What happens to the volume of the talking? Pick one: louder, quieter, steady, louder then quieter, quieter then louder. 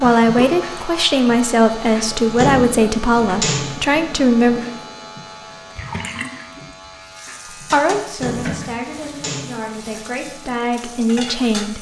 quieter then louder.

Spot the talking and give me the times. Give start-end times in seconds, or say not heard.
0.0-4.6, 7.6-11.7.